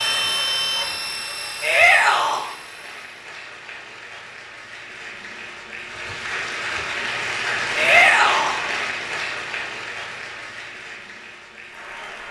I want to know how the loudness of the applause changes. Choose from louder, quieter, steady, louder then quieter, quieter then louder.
louder then quieter.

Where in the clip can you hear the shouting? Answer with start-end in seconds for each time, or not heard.
1.6-2.5, 7.8-8.6.